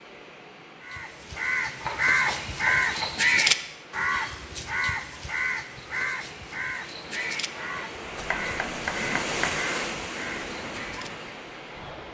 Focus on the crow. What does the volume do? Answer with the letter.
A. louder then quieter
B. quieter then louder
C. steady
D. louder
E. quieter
E.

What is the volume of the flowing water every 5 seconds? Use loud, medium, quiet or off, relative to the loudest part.
quiet, loud, loud.